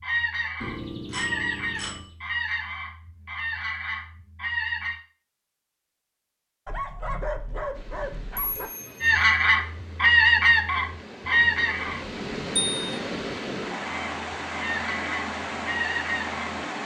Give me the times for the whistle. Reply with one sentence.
The whistle can't be heard in this clip.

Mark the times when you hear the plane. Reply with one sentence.
You can't hear the plane here.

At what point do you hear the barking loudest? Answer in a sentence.
The loudest moment of the barking is at 7 seconds.